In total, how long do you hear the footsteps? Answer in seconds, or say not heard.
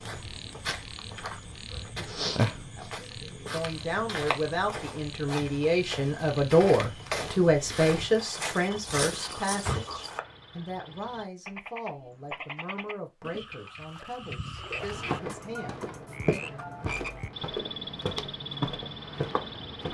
15 s.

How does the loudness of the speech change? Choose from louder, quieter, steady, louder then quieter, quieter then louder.
louder then quieter.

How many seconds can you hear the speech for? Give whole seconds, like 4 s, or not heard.
14 s.